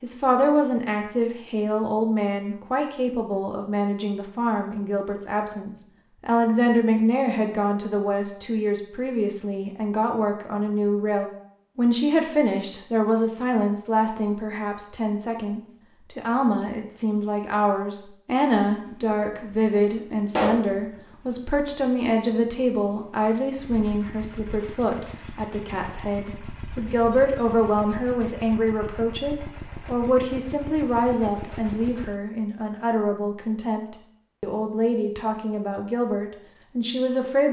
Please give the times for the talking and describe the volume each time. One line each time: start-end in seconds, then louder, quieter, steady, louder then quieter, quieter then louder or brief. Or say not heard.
0.0-37.4 steady.